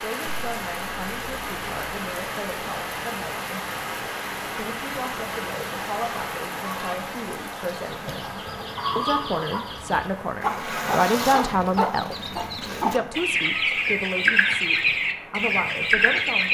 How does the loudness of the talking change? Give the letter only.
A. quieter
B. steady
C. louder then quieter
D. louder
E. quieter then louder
C.